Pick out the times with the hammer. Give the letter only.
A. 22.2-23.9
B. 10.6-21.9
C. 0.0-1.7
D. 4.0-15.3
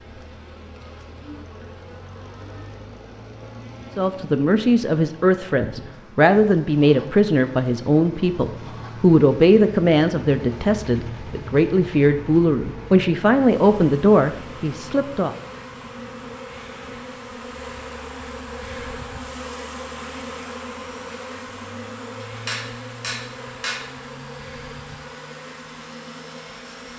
A.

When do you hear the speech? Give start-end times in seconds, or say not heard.
4.0-15.3.